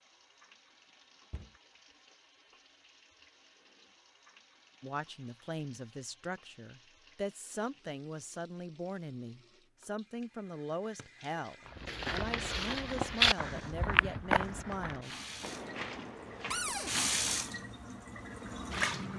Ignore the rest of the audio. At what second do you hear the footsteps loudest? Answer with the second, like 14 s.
13 s.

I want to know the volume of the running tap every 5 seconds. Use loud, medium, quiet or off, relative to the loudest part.
quiet, quiet, quiet, loud.